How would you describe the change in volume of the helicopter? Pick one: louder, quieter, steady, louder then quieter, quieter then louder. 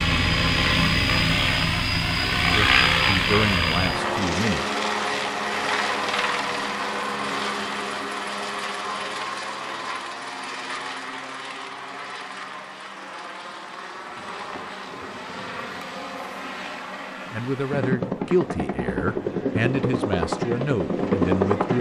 quieter then louder.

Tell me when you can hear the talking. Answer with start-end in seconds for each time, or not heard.
2.4-4.7, 17.2-21.7.